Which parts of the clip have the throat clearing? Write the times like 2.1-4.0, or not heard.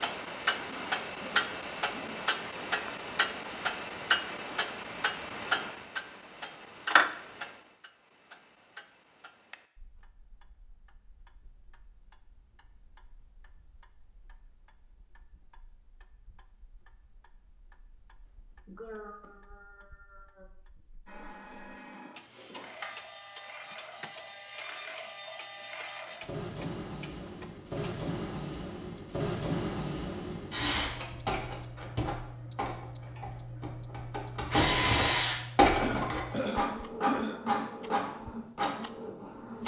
0.7-2.3, 18.6-20.4, 35.8-37.4.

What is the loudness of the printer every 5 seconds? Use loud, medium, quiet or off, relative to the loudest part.
off, off, off, off, quiet, medium, loud, loud.